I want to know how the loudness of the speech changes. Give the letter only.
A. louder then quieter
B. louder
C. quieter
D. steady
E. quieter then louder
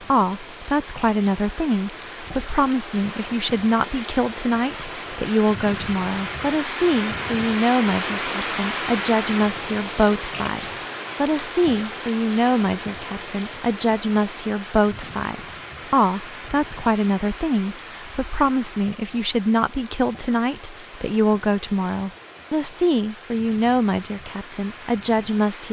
D.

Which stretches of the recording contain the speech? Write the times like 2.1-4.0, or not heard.
0.1-25.6.